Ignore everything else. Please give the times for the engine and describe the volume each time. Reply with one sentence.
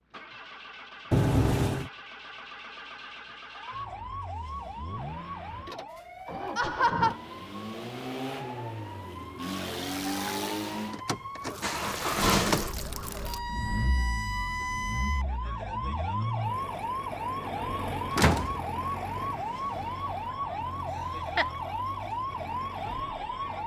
The engine can be heard from 0.1 to 23.6 s, getting louder then quieter.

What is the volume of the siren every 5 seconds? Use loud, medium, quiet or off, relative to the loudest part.
medium, medium, loud, loud, loud.